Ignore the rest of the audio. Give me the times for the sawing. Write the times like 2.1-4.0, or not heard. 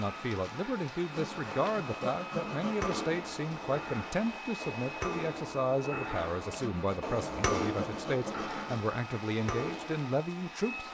1.1-3.2, 6.5-8.8.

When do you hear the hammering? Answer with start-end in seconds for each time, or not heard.
1.3-10.1.